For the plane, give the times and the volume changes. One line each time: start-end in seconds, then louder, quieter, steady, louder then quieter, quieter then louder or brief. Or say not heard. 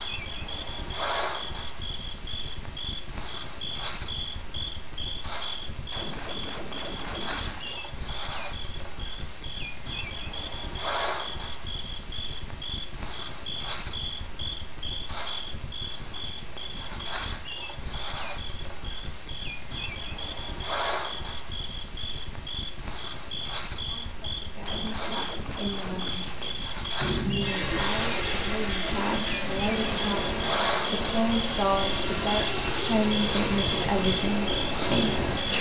26.9-35.5 steady.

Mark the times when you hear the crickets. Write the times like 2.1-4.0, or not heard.
0.0-35.5.